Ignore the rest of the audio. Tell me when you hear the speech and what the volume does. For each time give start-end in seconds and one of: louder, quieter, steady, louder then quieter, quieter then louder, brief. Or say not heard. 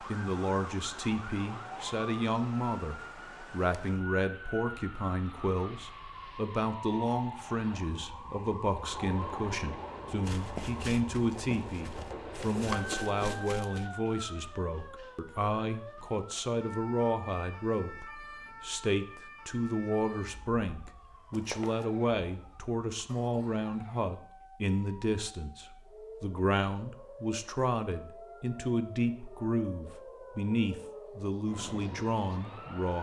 0.0-32.9 steady.